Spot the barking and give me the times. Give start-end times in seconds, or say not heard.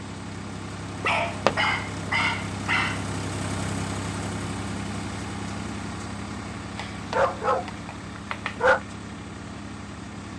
1.0-3.0, 6.8-8.8.